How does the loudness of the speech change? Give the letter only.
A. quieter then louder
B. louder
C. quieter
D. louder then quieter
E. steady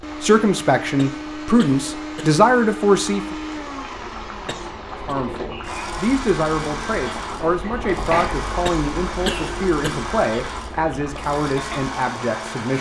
C.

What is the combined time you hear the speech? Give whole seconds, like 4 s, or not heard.
11 s.